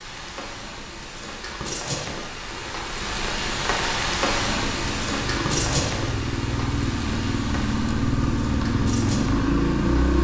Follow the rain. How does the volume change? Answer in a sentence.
The loudness of the rain goes up, then down.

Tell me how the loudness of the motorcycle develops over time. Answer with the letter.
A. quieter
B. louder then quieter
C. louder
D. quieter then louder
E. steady
C.